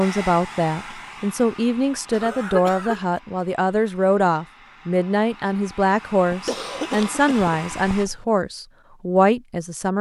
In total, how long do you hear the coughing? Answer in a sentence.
You can hear the coughing for 3 seconds altogether.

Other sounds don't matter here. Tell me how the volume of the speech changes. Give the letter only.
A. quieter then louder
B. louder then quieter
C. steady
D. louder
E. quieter
C.